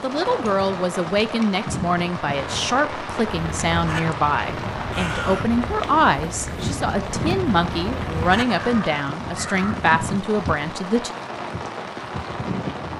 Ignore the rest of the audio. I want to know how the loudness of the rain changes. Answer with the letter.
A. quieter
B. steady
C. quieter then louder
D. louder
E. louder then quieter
B.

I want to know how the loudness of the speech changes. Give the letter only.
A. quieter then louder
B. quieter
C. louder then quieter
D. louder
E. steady
E.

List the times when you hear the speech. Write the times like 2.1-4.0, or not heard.
0.0-11.1.